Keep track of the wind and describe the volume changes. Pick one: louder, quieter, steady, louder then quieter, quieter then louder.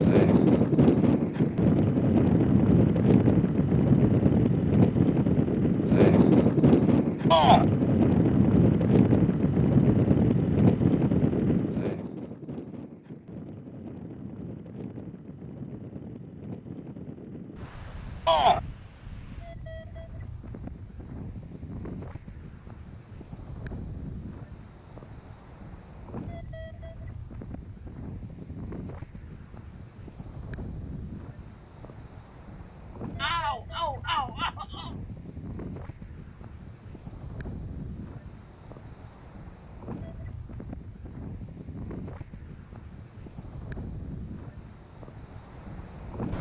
quieter.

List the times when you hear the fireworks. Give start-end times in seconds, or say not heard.
not heard.